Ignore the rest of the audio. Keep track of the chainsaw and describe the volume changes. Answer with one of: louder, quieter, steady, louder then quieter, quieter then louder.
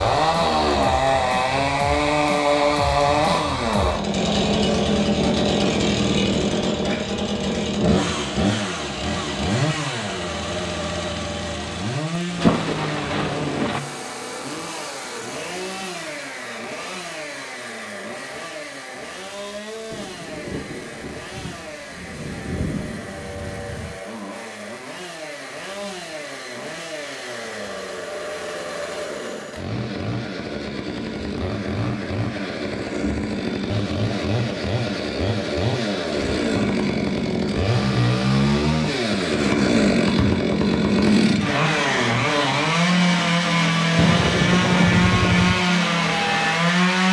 quieter then louder.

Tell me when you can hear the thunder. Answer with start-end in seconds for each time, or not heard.
12.2-13.8, 19.9-24.0, 43.9-45.5.